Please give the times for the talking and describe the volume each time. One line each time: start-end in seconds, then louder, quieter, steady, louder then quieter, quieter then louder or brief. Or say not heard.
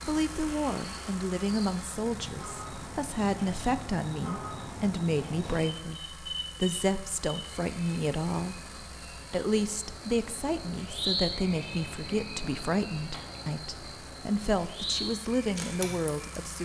0.1-16.5 steady.